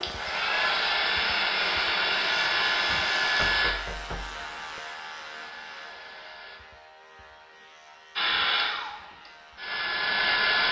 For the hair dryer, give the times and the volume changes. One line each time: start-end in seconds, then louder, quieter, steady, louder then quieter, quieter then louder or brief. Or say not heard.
0.0-6.6 quieter
8.2-10.6 brief.